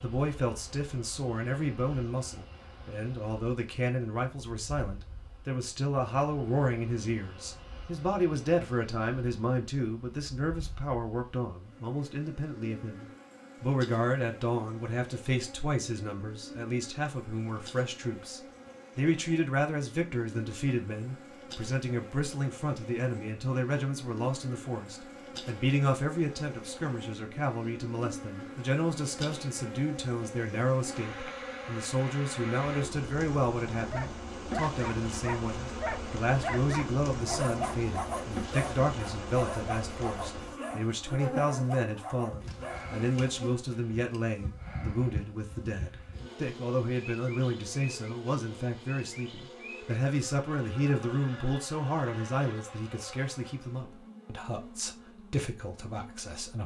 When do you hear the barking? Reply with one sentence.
The barking can be heard from 33.9 to 42.9 s.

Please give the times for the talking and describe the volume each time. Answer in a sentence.
You can hear the talking from 0.0 to 56.6 s, at a steady volume.